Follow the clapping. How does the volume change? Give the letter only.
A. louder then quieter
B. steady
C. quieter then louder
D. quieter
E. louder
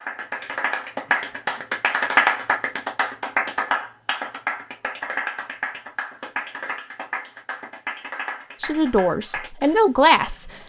D.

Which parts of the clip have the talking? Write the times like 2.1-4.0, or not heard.
8.6-10.5.